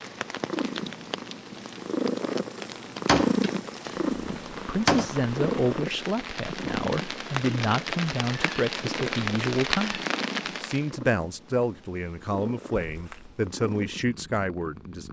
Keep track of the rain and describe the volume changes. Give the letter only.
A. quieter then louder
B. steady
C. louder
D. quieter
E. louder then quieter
C.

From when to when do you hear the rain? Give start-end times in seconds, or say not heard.
0.0-10.9.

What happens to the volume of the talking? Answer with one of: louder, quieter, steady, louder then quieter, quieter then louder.
steady.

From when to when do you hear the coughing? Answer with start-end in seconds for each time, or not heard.
not heard.